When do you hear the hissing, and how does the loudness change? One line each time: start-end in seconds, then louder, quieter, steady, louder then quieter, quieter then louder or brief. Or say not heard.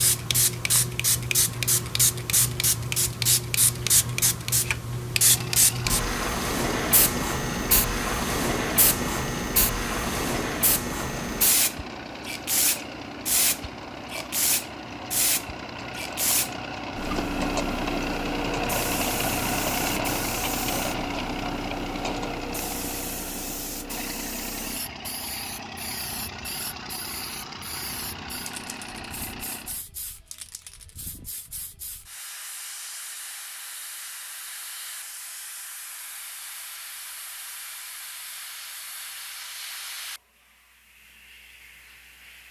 0.0-42.4 quieter.